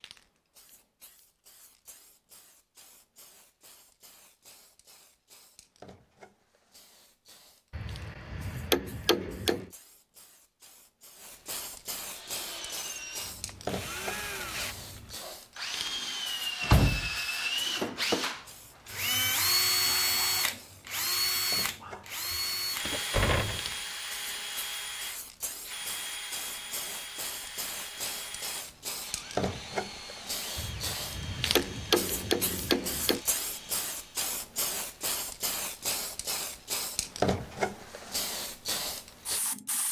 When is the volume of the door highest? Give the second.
17 s.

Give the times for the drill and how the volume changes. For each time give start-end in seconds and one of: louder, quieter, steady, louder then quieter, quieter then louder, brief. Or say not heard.
12.0-34.4 louder then quieter.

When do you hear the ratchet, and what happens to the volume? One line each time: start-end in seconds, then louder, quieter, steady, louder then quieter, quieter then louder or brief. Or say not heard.
not heard.